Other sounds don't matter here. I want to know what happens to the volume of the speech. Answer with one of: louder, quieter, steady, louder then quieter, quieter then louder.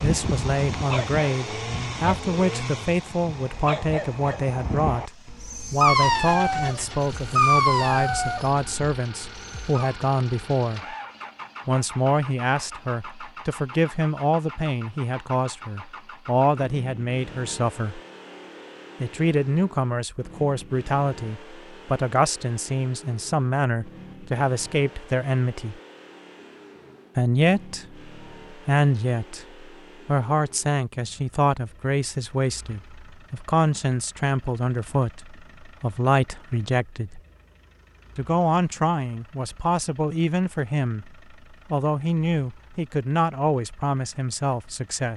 steady.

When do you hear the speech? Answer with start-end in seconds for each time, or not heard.
0.0-5.1, 5.7-10.9, 11.7-18.0, 19.0-25.8, 27.1-37.2, 38.1-45.1.